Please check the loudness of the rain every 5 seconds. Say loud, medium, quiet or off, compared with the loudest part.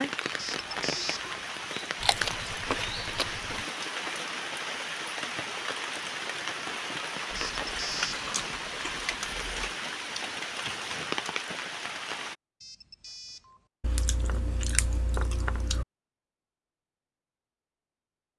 loud, loud, loud, off.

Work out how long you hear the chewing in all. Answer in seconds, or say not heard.
6 s.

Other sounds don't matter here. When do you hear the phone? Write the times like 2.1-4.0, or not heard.
0.3-1.4, 7.3-8.2, 12.6-13.7.